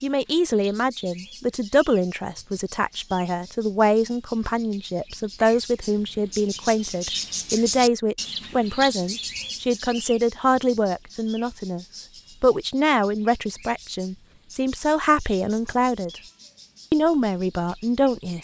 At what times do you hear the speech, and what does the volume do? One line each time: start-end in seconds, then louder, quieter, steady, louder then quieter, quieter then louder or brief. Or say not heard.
0.0-16.1 steady
16.9-18.3 brief.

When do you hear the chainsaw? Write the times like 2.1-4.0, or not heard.
not heard.